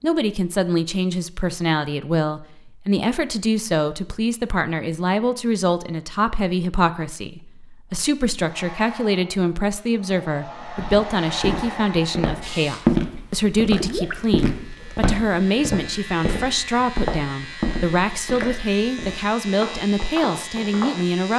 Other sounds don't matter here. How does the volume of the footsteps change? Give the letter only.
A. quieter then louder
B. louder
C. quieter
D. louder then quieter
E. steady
C.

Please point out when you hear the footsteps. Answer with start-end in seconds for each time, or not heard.
10.6-21.0.